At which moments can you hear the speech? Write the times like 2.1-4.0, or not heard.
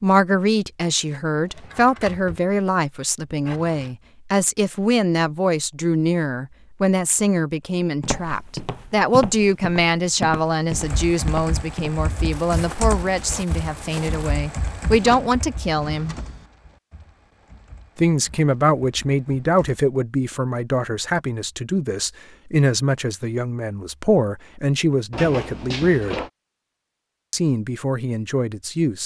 0.0-16.1, 17.9-26.2, 27.3-29.0.